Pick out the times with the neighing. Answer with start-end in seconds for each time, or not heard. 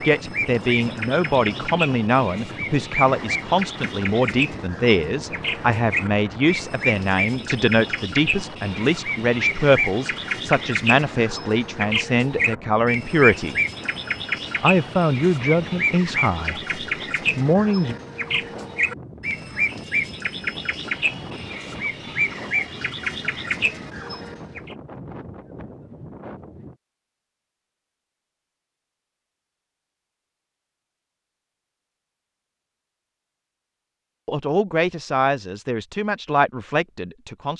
not heard.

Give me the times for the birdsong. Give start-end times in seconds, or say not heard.
0.0-24.8.